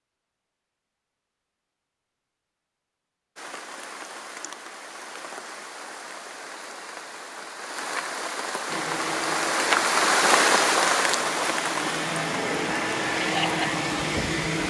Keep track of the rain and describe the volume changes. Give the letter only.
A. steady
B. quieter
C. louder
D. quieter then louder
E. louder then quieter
E.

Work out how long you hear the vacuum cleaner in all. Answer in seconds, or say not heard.
6 s.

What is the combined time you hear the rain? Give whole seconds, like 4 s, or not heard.
11 s.